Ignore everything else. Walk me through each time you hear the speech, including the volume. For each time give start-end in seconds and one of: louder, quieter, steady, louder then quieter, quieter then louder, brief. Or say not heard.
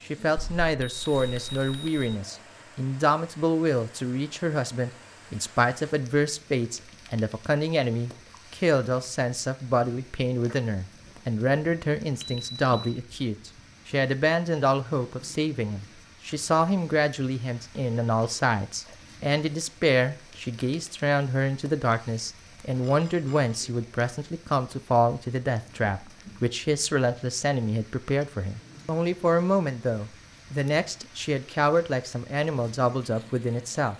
0.0-33.9 steady.